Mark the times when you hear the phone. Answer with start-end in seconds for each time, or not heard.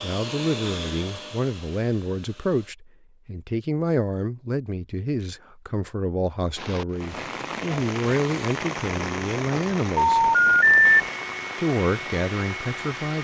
9.9-11.1.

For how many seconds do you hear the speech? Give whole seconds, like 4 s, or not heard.
12 s.